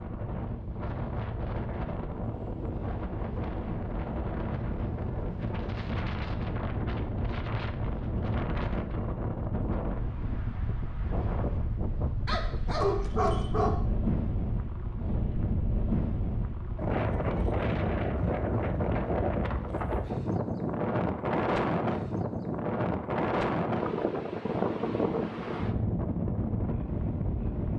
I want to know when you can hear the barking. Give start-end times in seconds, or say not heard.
12.2-13.8.